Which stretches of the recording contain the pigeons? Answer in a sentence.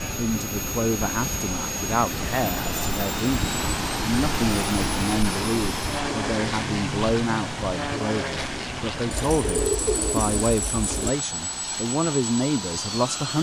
You can hear the pigeons from 9.1 to 11.1 s.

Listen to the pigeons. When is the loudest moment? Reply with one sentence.
The volume of the pigeons peaks at 10 seconds.